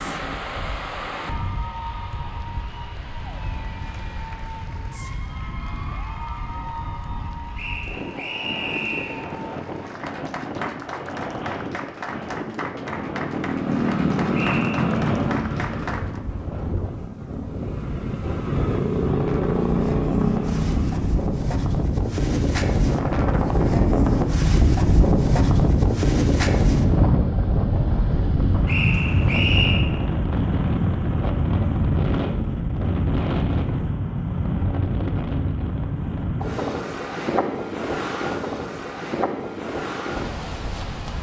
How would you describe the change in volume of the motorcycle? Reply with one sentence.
The loudness of the motorcycle goes down, then up.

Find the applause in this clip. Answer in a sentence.
The applause can be heard from 0.0 to 16.2 s.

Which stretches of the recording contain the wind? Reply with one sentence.
You can hear the wind from 0.0 to 41.1 s.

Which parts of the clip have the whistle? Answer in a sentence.
The whistle can be heard from 7.5 to 9.2 s, from 14.3 to 14.9 s and from 28.6 to 29.8 s.